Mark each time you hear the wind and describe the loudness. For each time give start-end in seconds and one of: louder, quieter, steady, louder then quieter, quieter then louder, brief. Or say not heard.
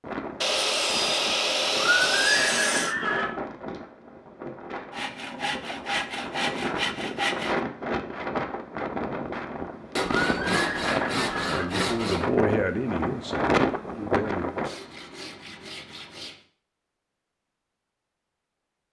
0.0-14.8 louder.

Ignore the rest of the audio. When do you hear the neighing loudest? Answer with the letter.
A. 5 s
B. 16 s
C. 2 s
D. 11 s
C.